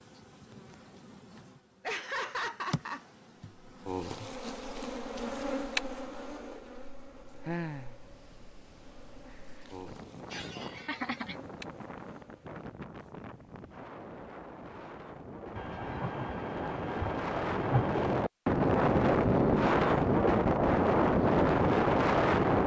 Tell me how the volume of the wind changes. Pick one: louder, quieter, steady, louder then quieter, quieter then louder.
louder.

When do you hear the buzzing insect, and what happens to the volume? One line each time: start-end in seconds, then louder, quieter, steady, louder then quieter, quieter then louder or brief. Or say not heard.
0.0-12.7 louder then quieter.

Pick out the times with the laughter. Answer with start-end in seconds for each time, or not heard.
1.8-3.5, 10.3-11.3, 15.6-18.0.